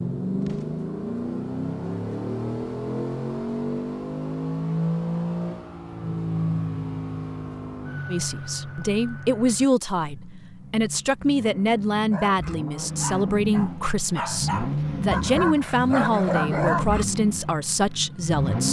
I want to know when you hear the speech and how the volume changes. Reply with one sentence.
The speech can be heard from 8.1 to 18.6 s, at a steady volume.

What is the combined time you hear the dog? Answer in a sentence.
The dog can be heard for 5 seconds in total.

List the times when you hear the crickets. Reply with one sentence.
The crickets can't be heard in this clip.